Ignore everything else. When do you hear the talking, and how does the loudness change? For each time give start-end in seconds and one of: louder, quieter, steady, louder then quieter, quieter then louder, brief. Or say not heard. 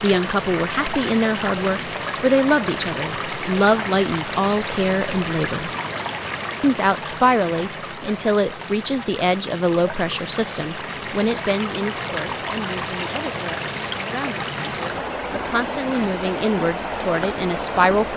0.0-5.7 steady
6.6-18.1 quieter then louder.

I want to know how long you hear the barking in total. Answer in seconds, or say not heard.
not heard.